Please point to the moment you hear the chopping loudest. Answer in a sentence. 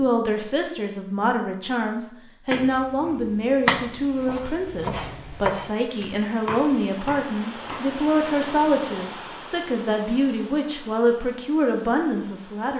The loudest moment of the chopping is at 4 seconds.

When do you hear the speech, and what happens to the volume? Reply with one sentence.
The speech can be heard from 0.0 to 12.7 s, at a steady volume.